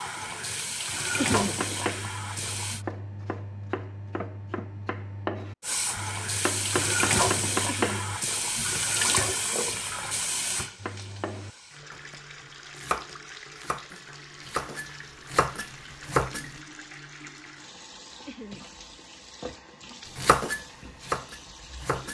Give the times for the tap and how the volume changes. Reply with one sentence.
You can hear the tap briefly from 0.0 to 2.9 s; and from 5.6 to 22.0 s, getting quieter.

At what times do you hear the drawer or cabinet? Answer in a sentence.
The drawer or cabinet can't be heard in this clip.